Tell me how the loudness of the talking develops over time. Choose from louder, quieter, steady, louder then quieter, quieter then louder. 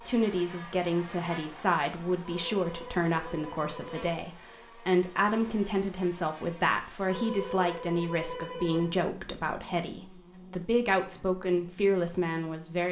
steady.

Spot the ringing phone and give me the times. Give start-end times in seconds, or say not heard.
2.2-4.0, 7.0-8.9.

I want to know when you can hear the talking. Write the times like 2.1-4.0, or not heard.
0.0-12.8.